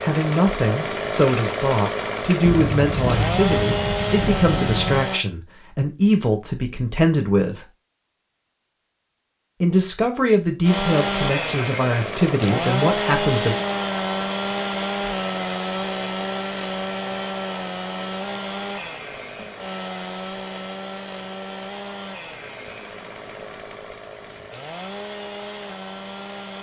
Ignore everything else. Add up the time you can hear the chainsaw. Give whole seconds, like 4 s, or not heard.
21 s.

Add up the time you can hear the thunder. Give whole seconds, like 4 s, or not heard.
3 s.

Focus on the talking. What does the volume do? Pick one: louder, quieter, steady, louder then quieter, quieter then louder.
steady.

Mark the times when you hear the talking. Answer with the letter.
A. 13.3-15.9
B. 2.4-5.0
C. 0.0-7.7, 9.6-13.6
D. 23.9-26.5
C.